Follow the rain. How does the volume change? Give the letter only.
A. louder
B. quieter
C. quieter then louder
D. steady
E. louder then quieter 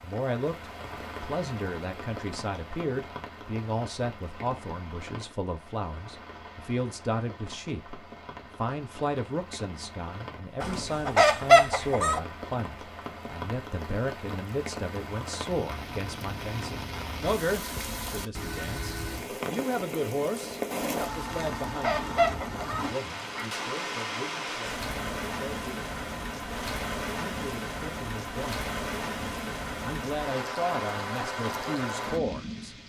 A.